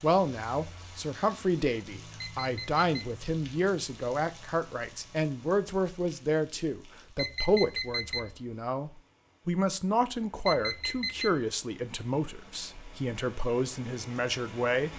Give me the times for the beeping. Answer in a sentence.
The beeping can be heard from 2.2 to 2.8 s, from 7.2 to 8.3 s and from 10.4 to 11.3 s.